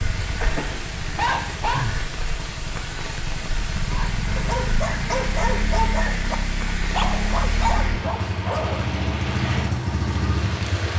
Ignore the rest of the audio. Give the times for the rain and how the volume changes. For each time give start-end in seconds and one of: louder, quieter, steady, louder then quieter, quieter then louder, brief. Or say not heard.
0.0-10.9 steady.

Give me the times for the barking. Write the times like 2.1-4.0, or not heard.
0.2-1.9, 3.9-8.8.